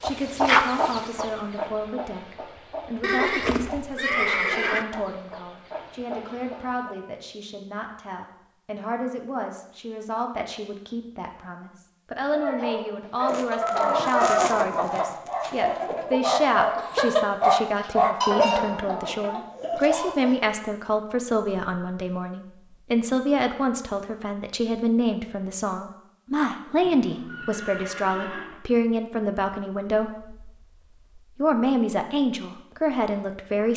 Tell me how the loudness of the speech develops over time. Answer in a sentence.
The volume of the speech goes up.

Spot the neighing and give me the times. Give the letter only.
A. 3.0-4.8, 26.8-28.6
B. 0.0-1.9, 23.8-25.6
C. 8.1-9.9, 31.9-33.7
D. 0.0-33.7
A.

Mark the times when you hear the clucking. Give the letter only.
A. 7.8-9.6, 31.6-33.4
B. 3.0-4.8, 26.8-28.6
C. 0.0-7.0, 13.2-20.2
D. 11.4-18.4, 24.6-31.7
C.